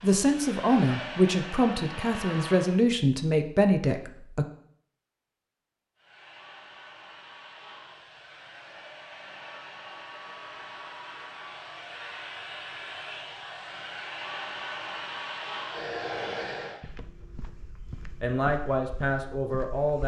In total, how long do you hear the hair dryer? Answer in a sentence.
You can hear the hair dryer for 14 seconds altogether.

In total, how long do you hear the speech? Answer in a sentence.
The speech can be heard for 6 seconds in total.